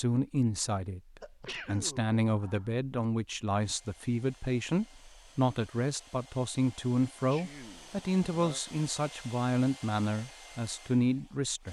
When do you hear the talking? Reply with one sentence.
The talking can be heard from 0.0 to 11.6 s.